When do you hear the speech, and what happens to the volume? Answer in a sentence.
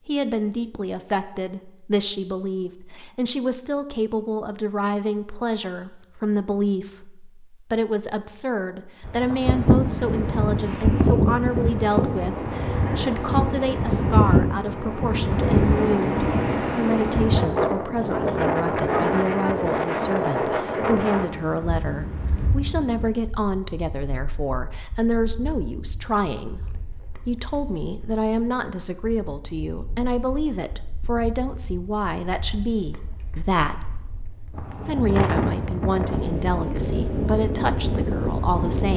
You can hear the speech from 0.1 to 38.9 s, at a steady volume.